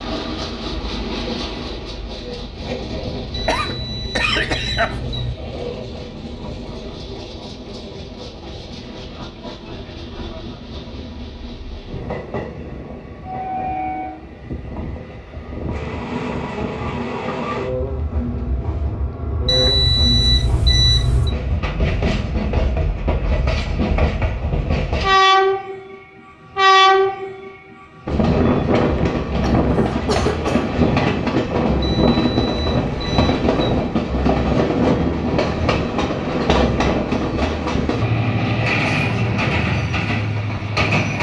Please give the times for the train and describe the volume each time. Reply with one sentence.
The train can be heard from 0.0 to 41.1 s, getting louder.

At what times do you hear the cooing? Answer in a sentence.
You can't hear the cooing here.